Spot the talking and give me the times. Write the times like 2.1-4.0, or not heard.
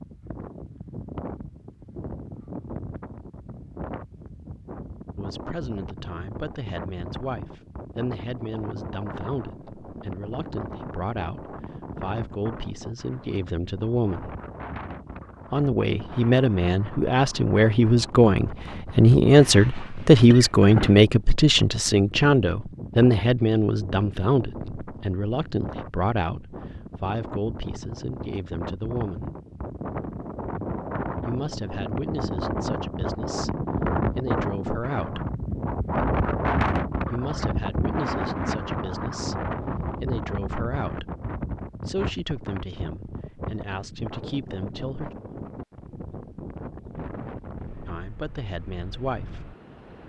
5.2-14.3, 15.5-29.4, 31.2-35.2, 37.1-41.1, 41.8-45.1, 47.9-49.5.